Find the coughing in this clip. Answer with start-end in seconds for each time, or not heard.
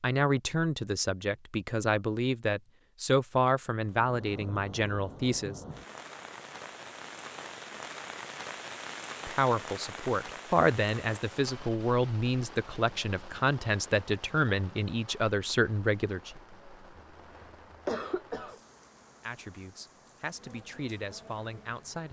17.1-18.6.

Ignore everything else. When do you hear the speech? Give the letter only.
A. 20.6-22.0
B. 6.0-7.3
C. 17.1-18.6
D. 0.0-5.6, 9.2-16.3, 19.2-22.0
D.